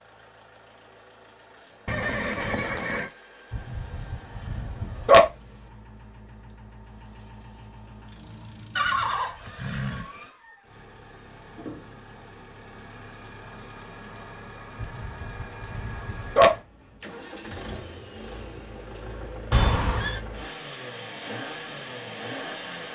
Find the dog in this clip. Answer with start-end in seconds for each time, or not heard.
3.5-5.2, 14.8-16.5.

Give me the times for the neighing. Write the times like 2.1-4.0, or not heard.
1.9-3.1, 8.8-10.1, 19.5-20.2.